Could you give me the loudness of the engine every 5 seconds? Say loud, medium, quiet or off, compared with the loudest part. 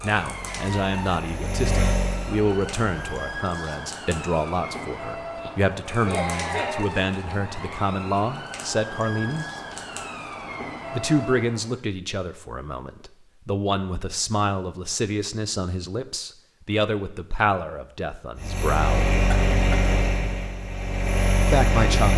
medium, off, off, loud, loud.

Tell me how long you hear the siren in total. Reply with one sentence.
The siren can be heard for 12 seconds in total.